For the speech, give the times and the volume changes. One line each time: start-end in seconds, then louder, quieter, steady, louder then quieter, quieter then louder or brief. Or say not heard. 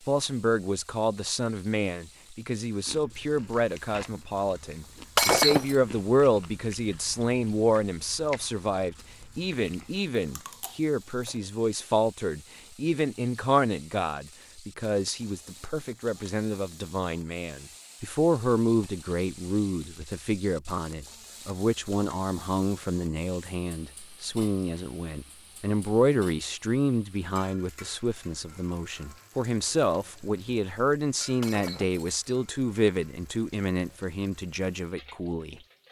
0.1-35.5 steady.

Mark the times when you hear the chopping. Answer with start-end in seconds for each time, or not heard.
not heard.